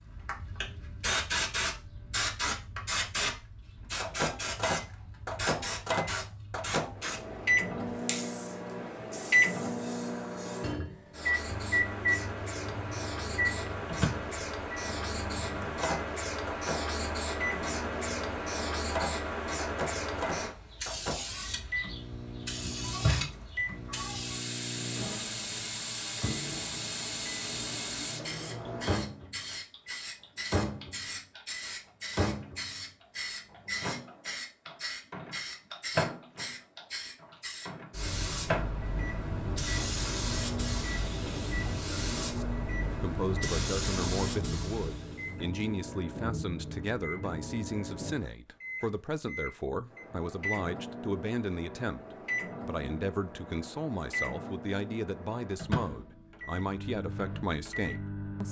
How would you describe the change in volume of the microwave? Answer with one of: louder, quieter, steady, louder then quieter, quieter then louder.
quieter.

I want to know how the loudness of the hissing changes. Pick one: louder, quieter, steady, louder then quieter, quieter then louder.
steady.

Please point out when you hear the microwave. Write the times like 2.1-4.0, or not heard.
4.0-58.4.